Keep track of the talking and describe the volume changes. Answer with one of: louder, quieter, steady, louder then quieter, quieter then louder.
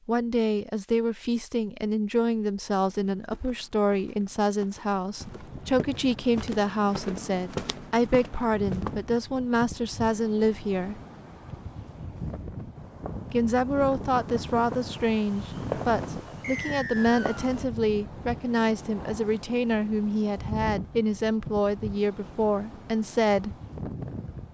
steady.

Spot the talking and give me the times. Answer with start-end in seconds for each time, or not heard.
0.1-10.9, 13.3-23.6.